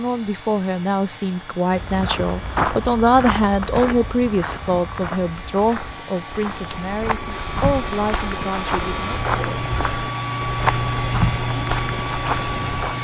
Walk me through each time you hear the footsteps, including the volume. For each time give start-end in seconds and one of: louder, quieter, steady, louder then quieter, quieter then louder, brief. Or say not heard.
1.7-12.9 quieter then louder.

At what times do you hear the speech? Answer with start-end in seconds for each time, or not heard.
0.0-9.2.